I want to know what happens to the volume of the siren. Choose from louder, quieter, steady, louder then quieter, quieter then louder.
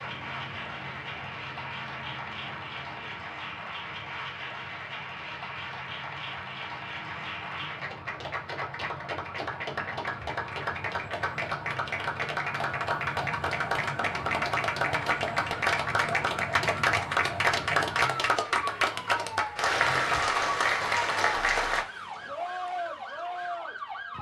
louder.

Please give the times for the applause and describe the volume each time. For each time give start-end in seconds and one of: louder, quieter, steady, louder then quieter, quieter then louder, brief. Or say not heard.
0.0-21.9 louder.